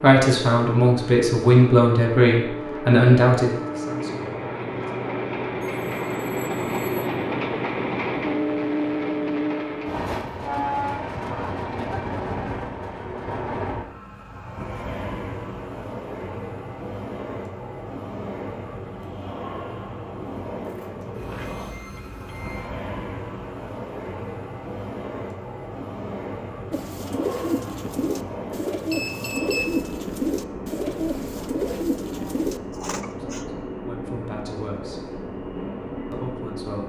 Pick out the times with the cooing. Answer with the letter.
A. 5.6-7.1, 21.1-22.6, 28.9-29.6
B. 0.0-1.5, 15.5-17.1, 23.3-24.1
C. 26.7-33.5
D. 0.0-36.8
C.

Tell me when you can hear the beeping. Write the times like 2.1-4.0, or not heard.
5.6-7.1, 21.1-22.6, 28.9-29.6.